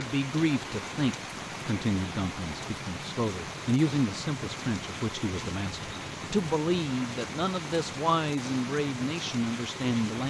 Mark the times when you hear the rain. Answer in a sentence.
The rain can be heard from 0.0 to 10.2 s.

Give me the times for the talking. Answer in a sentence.
The talking can be heard from 0.0 to 10.2 s.